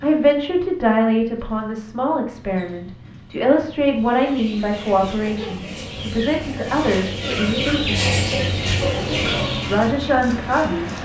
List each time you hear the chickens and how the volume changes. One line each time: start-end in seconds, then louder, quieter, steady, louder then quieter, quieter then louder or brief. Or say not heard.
4.0-9.9 louder.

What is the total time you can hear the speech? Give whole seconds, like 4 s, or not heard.
9 s.